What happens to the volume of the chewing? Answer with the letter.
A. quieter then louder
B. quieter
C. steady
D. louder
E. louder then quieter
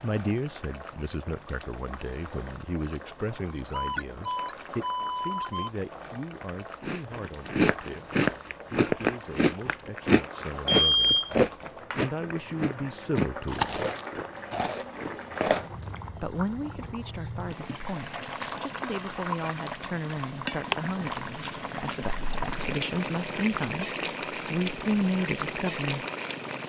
B.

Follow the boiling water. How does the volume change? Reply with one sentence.
The loudness of the boiling water goes up.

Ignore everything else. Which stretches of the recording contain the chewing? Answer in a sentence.
The chewing can be heard from 6.8 to 15.9 s.